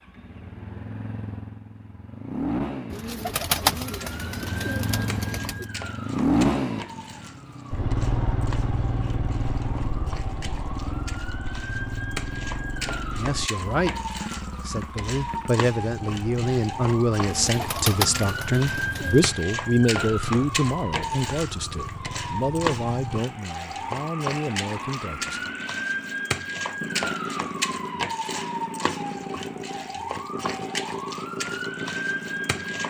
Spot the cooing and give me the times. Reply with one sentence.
You can hear the cooing from 2.9 to 5.7 s and from 17.2 to 19.2 s.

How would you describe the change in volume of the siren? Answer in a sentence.
The loudness of the siren goes up.